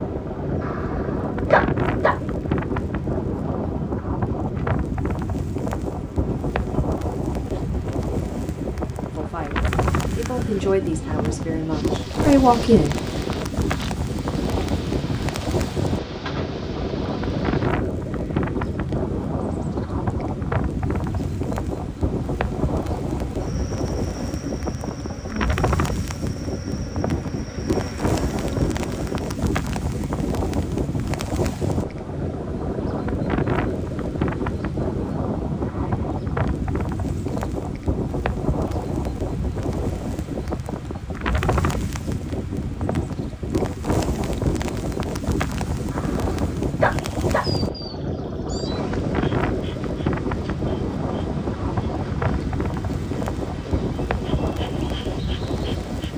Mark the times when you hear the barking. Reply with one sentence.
You can hear the barking from 0.6 to 2.1 s and from 45.9 to 47.5 s.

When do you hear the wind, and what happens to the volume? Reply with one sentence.
You can hear the wind from 0.0 to 56.1 s, at a steady volume.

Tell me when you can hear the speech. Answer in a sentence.
The speech can be heard from 9.2 to 12.9 s.